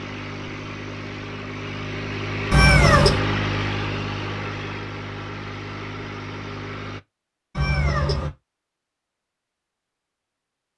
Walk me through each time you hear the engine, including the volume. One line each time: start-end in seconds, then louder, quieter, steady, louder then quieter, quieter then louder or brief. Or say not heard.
0.0-7.0 louder then quieter.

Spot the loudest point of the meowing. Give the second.
3 s.